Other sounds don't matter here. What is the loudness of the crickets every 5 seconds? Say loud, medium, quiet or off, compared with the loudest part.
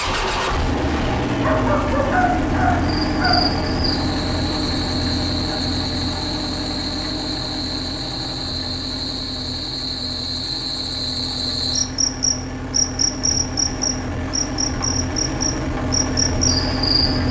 medium, medium, loud, loud.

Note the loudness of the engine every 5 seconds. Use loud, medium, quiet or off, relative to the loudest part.
loud, medium, medium, loud.